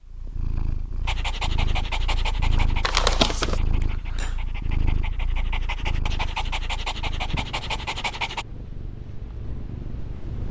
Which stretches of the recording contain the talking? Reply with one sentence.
You can't hear the talking here.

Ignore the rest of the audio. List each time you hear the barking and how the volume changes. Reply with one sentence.
You can hear the barking from 1.1 to 8.4 s, getting quieter then louder.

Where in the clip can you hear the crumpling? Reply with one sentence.
You can hear the crumpling from 2.8 to 3.6 s.